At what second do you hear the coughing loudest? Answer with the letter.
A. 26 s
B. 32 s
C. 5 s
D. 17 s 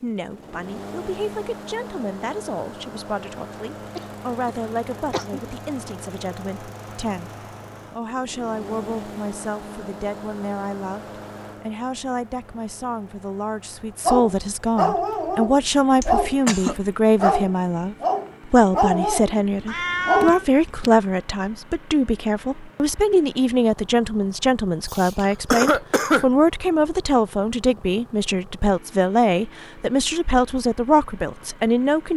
A.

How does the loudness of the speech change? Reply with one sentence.
The volume of the speech goes up.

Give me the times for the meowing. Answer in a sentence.
The meowing can be heard from 19.6 to 20.4 s.